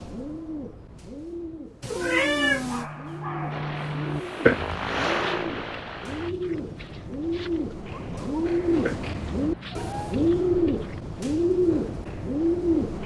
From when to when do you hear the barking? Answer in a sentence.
You can hear the barking from 2.5 to 11.2 s.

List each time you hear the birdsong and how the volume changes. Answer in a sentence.
You can hear the birdsong from 0.0 to 13.0 s, getting louder.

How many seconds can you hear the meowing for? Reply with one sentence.
You can hear the meowing for 2 seconds altogether.